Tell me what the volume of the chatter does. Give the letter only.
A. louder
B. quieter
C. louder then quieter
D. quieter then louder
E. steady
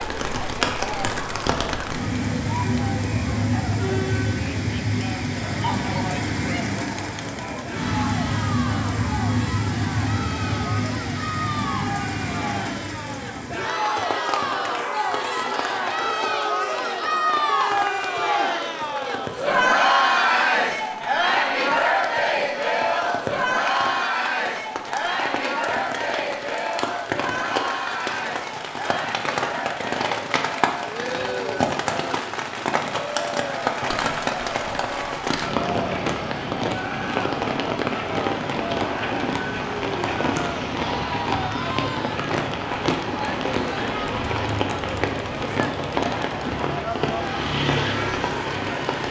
C.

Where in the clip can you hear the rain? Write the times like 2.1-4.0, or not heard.
0.0-49.0.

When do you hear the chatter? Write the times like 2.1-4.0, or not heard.
0.0-49.0.